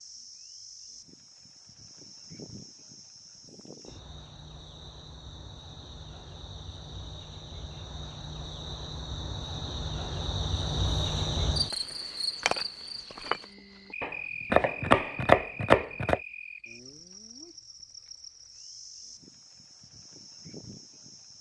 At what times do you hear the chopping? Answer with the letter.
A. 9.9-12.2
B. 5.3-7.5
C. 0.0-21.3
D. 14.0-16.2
D.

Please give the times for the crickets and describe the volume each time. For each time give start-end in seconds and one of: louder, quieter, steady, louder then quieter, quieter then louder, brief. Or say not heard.
0.0-21.3 louder then quieter.